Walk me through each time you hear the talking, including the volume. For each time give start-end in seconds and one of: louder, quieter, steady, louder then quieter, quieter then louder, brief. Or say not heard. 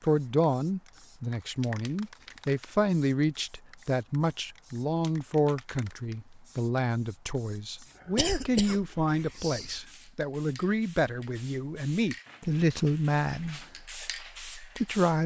0.0-15.2 steady.